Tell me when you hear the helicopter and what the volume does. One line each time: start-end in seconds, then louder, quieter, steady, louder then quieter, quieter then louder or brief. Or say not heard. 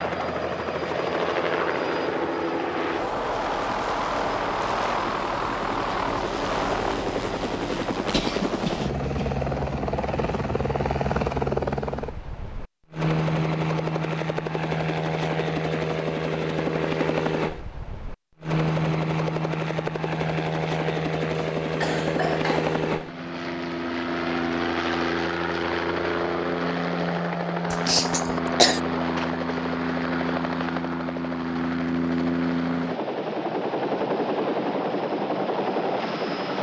0.0-36.5 steady.